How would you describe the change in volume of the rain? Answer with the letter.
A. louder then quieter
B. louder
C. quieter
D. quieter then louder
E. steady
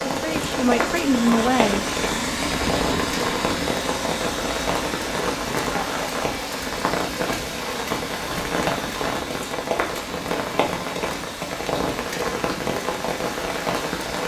E.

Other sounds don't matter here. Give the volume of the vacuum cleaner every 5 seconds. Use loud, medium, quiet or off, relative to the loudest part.
loud, medium, medium.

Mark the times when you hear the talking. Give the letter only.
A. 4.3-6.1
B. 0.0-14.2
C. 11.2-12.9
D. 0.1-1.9
D.